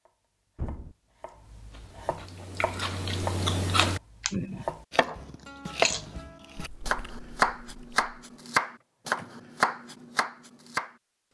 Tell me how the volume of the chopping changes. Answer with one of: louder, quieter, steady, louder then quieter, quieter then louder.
louder.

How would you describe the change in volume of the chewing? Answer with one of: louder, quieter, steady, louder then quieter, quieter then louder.
louder then quieter.